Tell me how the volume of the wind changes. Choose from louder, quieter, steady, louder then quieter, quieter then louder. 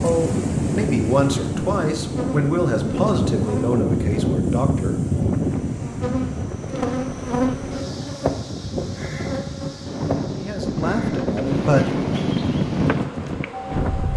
quieter then louder.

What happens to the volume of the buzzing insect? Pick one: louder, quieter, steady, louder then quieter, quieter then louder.
louder then quieter.